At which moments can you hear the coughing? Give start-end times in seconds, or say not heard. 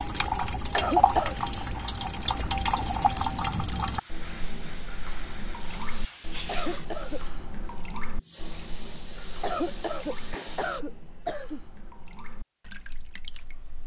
0.7-1.4, 6.5-7.2, 9.4-11.6.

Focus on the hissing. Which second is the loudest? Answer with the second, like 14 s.
10 s.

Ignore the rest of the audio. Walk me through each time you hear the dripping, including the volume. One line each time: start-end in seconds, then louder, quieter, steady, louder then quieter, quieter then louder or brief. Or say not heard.
0.0-13.8 quieter.